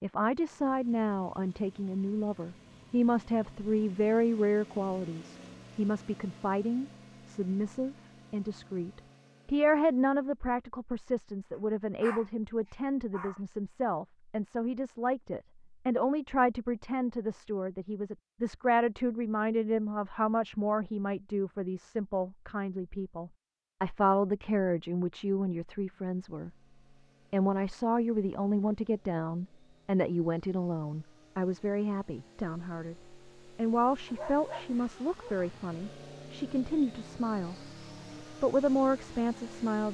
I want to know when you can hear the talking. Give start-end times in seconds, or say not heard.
0.0-26.5, 27.3-37.5, 38.2-39.8.